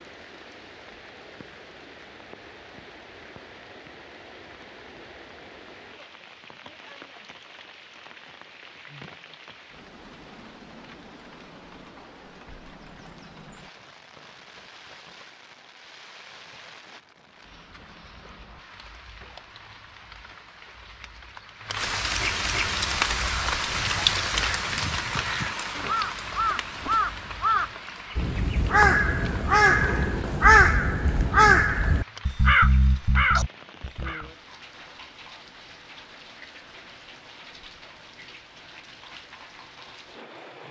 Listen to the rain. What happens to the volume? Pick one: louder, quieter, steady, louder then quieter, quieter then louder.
louder then quieter.